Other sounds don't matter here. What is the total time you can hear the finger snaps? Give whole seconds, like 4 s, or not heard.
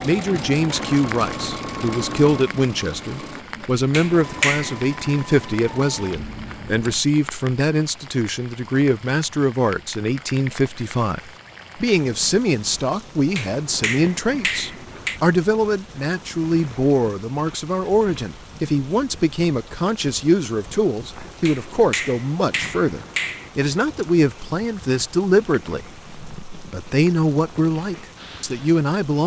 5 s.